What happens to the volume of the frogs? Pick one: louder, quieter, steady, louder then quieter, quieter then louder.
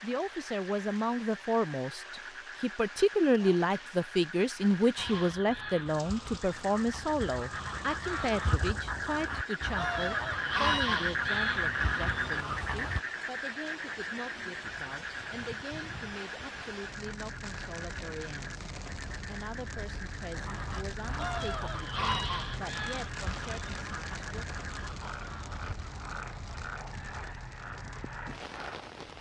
louder then quieter.